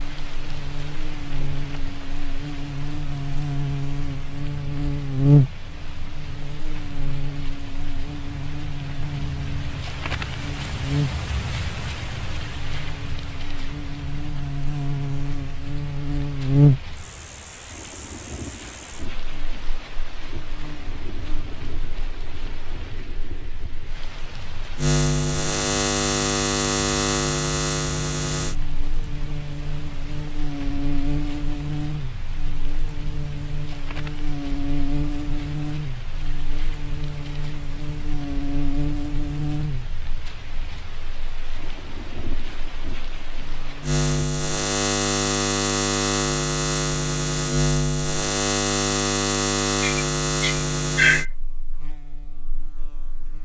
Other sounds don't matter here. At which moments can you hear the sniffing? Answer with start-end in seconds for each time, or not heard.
49.8-51.3.